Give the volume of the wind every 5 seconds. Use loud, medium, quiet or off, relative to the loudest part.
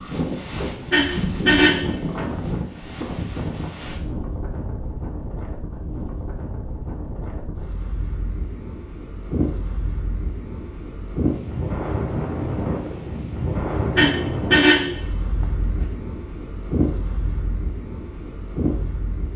loud, medium, loud, loud.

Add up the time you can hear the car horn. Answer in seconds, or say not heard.
2 s.